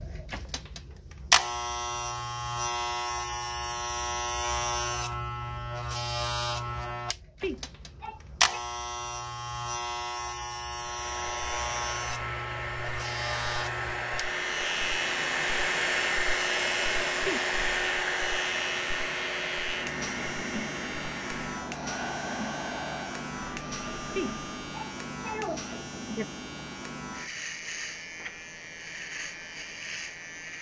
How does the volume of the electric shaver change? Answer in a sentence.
The loudness of the electric shaver goes down.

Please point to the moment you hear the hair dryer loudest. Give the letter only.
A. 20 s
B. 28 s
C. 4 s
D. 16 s
D.